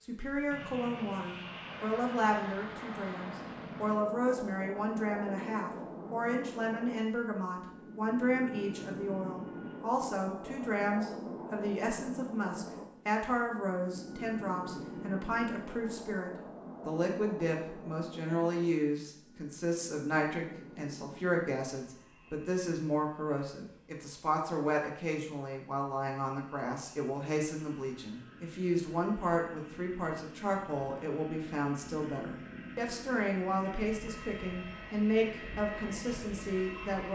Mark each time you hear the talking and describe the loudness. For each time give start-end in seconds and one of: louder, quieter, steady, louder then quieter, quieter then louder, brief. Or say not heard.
0.0-37.1 steady.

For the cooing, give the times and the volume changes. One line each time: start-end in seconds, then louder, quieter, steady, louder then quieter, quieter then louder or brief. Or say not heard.
not heard.